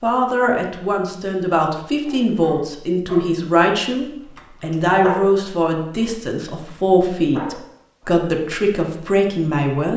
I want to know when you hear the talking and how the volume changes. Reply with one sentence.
The talking can be heard from 0.0 to 9.9 s, at a steady volume.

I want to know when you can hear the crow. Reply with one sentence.
You can't hear the crow here.